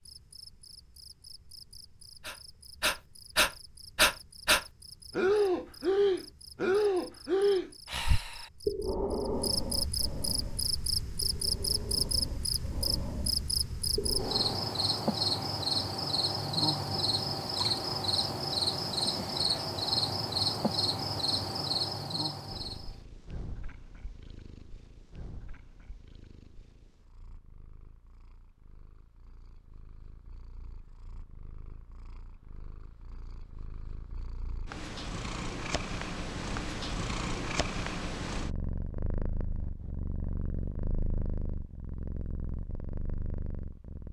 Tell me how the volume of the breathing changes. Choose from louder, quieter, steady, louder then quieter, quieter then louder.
quieter.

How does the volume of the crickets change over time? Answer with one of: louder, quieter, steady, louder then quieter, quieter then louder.
louder.